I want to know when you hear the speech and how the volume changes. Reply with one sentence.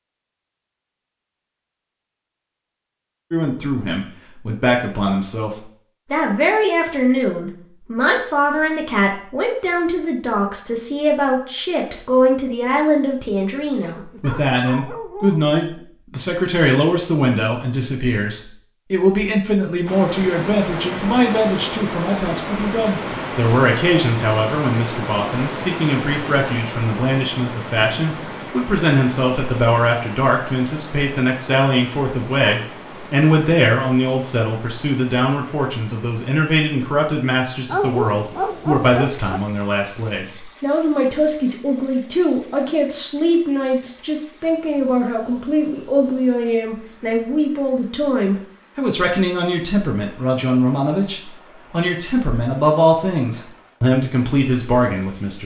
The speech can be heard from 3.3 to 55.3 s, at a steady volume.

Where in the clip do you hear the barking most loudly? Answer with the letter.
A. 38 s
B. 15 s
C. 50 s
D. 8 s
A.